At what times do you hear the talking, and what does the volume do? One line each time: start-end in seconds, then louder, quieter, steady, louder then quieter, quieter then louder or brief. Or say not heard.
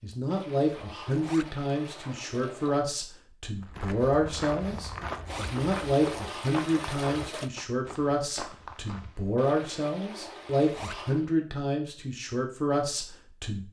0.0-13.6 steady.